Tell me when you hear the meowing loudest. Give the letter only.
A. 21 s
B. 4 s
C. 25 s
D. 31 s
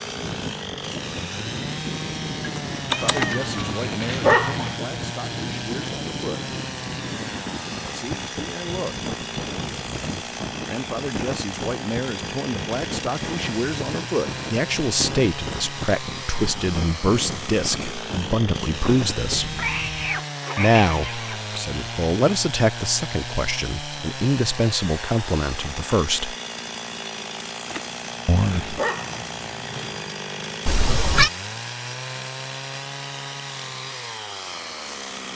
D.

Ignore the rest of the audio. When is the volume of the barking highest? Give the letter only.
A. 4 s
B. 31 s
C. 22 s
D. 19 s
A.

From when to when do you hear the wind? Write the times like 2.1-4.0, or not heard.
0.0-20.2.